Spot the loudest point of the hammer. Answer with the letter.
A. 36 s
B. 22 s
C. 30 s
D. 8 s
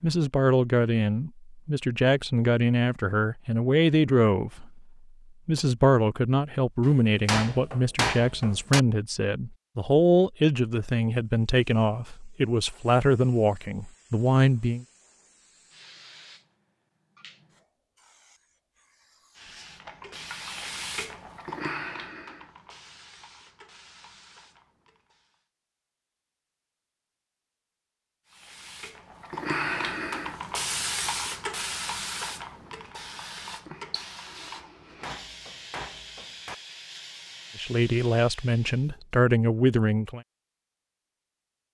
D.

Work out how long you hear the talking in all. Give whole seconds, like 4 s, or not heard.
17 s.